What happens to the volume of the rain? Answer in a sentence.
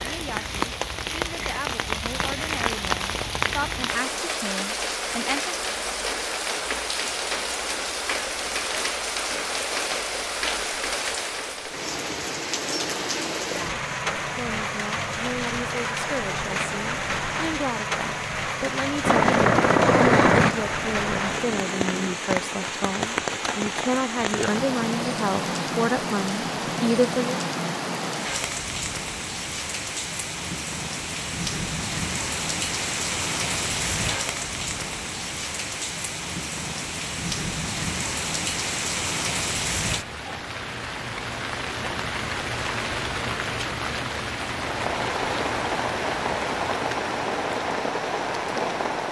The volume of the rain stays about the same.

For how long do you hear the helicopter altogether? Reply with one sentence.
The helicopter can be heard for 3 seconds in total.